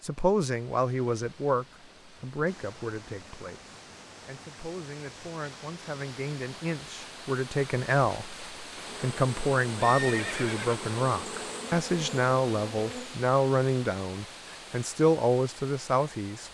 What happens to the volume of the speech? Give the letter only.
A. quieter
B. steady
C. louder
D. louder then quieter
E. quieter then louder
E.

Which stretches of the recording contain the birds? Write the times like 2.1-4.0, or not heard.
not heard.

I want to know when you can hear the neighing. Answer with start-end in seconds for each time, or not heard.
9.8-10.8.